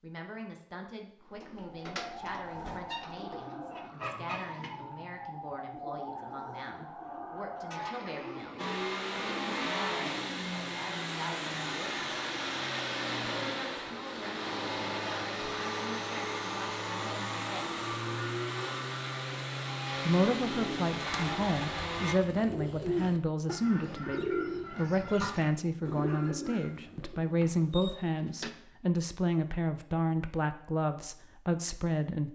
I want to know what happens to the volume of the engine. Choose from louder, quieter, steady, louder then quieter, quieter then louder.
steady.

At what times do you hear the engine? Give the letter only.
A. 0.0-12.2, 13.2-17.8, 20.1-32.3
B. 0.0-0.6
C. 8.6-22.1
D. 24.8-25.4
C.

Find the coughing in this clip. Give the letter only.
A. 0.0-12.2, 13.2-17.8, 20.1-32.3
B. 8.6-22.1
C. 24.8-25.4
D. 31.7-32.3
C.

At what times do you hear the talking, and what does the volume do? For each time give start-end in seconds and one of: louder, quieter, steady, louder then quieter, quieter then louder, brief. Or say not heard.
0.0-12.2 steady
13.2-17.8 steady
20.1-32.3 steady.